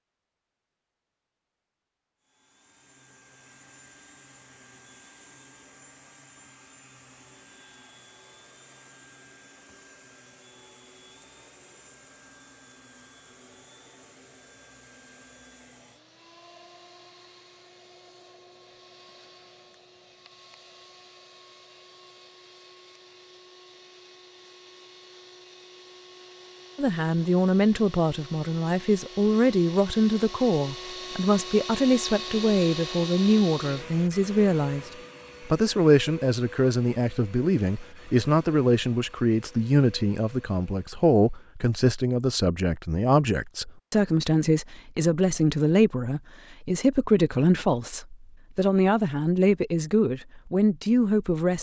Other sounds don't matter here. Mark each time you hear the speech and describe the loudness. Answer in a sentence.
The speech can be heard from 26.8 to 51.5 s, at a steady volume.